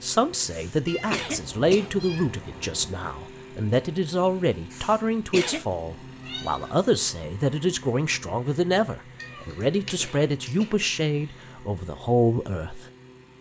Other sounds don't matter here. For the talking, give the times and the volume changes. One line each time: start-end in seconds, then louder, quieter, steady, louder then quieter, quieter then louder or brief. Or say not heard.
0.0-12.8 steady.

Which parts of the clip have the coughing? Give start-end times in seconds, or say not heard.
0.5-1.9, 4.7-5.7, 9.3-11.6.